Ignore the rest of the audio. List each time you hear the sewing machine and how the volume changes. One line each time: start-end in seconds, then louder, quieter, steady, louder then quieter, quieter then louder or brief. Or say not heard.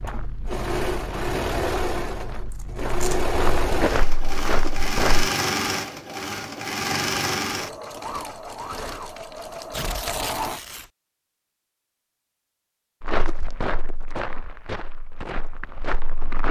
0.0-10.6 quieter.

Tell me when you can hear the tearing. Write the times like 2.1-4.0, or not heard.
2.5-3.2, 9.7-10.9.